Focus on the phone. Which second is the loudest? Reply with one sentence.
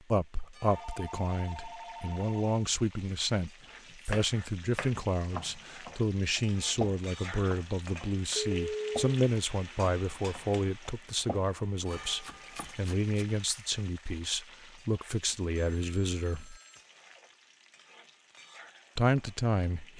The loudest moment of the phone is at 9 seconds.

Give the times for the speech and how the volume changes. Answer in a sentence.
The speech can be heard from 0.1 to 16.6 s, at a steady volume; and briefly from 18.9 to 19.9 s.